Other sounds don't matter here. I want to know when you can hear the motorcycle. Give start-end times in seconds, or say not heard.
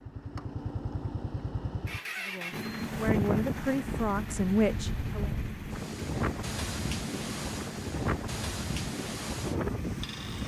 0.0-10.4.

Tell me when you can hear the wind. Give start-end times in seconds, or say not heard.
2.7-10.4.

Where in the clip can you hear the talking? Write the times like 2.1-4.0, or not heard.
2.2-5.3.